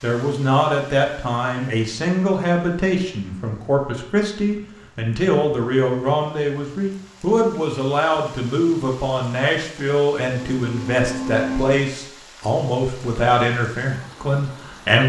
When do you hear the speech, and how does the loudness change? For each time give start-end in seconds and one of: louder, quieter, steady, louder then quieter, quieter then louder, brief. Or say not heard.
0.0-15.0 steady.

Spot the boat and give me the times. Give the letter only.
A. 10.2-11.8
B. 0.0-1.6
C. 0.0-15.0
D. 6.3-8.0
A.